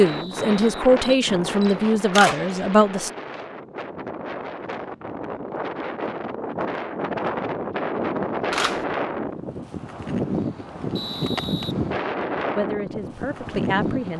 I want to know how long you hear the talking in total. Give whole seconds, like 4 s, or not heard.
5 s.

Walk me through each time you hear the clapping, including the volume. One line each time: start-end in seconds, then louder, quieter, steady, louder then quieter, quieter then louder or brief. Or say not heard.
not heard.